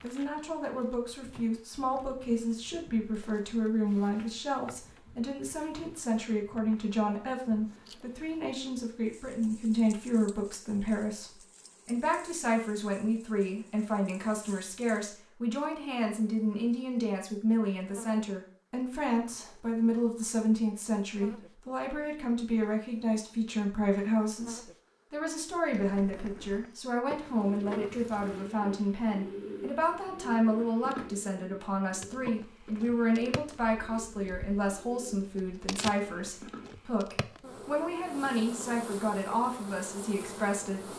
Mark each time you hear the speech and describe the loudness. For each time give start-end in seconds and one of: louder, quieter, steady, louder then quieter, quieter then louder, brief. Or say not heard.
0.0-40.9 steady.